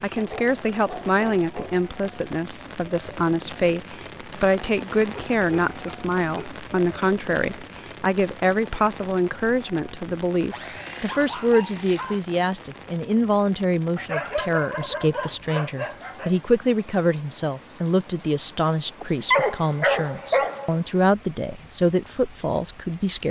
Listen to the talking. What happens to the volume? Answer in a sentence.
The loudness of the talking stays about the same.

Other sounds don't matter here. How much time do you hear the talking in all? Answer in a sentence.
The talking can be heard for 23 seconds in total.